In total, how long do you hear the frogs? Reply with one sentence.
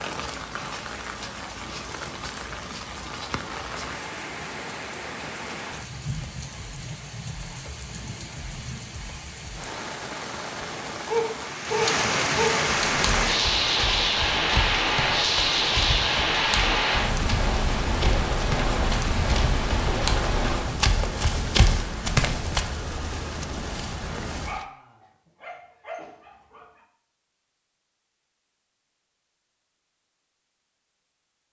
You can't hear the frogs here.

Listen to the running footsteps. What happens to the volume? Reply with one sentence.
The volume of the running footsteps goes up.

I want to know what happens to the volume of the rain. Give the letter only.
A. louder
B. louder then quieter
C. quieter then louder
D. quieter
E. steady
B.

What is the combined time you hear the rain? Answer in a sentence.
The rain can be heard for 25 seconds in total.